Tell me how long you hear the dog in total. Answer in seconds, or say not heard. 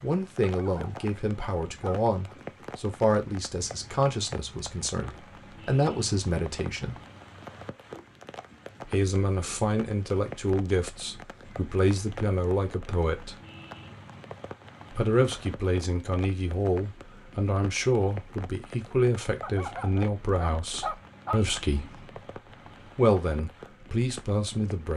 4 s.